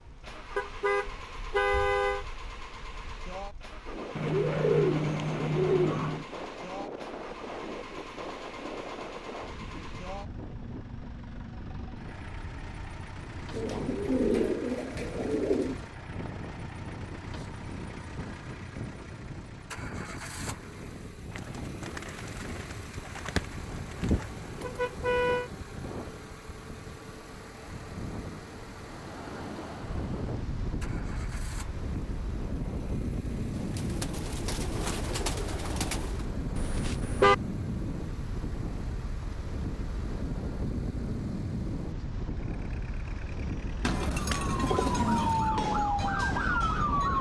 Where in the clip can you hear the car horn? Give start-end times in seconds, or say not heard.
0.6-2.2, 24.0-25.5, 36.5-37.4.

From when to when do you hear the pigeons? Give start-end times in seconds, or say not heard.
4.2-6.2, 13.5-15.8, 21.3-24.3, 33.5-36.2, 43.8-45.5.